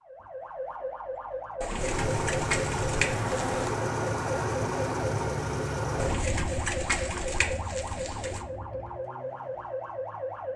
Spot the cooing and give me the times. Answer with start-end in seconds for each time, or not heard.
1.6-3.6, 6.0-8.4.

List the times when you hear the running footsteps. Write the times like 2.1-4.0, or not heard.
not heard.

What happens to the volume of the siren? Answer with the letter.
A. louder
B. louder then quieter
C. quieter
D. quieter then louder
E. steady
E.